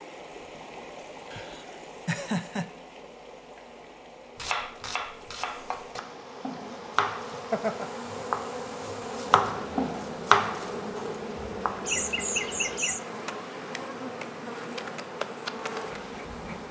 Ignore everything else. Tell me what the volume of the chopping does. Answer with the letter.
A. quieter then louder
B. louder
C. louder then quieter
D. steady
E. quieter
C.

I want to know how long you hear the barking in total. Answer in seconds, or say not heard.
not heard.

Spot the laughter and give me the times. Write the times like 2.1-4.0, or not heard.
1.3-2.6, 7.3-7.9, 11.8-13.0.